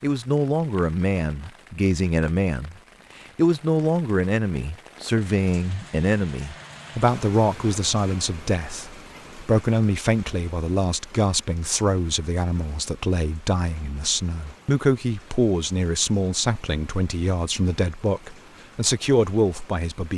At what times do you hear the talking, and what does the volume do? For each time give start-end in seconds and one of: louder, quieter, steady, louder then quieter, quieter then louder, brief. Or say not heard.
0.0-2.8 brief
3.4-20.1 steady.